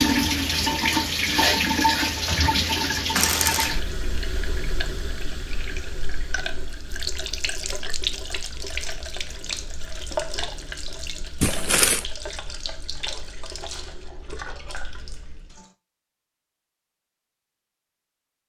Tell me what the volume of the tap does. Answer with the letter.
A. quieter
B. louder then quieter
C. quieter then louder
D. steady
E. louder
A.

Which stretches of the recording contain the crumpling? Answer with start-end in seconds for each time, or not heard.
3.1-3.8, 11.4-12.1.